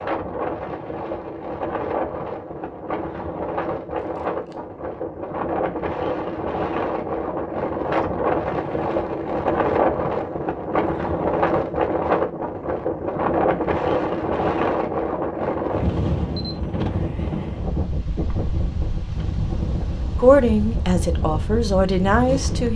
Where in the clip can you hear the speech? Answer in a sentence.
The speech can be heard from 20.1 to 22.7 s.